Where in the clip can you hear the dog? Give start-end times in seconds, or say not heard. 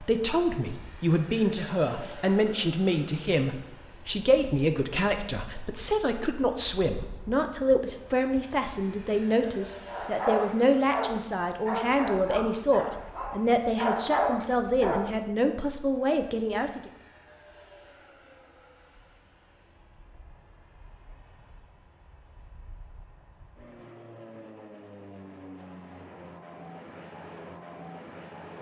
9.8-15.2.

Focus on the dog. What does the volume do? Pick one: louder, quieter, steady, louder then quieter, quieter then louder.
quieter then louder.